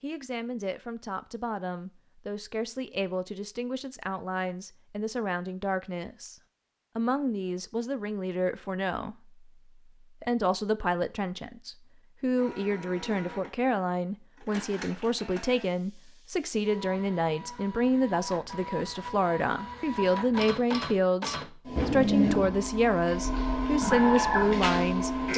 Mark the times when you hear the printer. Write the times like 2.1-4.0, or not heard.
12.3-25.3.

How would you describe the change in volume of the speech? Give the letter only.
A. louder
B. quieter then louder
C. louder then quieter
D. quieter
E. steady
A.